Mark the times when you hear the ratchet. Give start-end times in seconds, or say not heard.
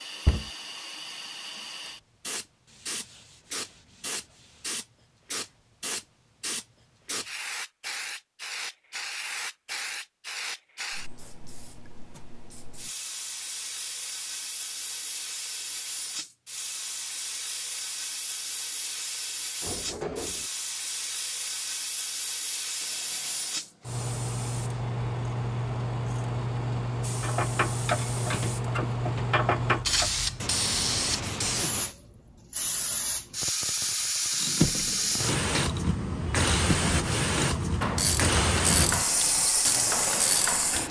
27.2-30.1, 34.3-40.8.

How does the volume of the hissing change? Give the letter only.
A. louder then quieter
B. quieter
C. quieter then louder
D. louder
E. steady
D.